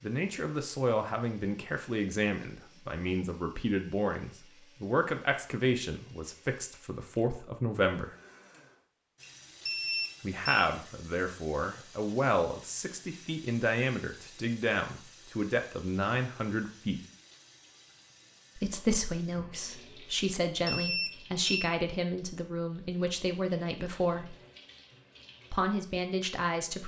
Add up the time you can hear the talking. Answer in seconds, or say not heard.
22 s.